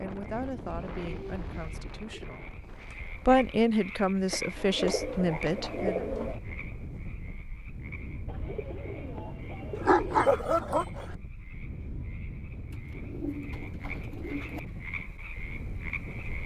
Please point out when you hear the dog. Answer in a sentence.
The dog can be heard from 9.8 to 11.2 s.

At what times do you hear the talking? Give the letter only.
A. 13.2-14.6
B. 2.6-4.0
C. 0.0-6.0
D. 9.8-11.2
C.